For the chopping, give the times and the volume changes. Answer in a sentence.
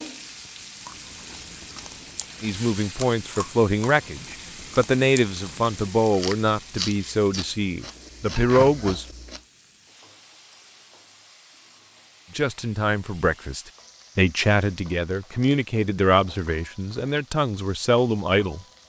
You can't hear the chopping here.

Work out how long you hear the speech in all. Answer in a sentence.
The speech can be heard for 13 seconds in total.